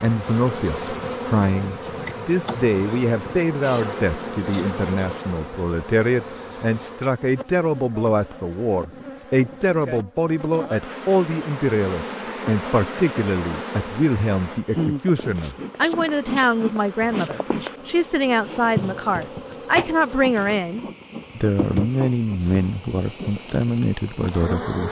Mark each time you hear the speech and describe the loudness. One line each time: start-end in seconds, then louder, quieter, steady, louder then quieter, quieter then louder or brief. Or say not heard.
0.0-24.8 steady.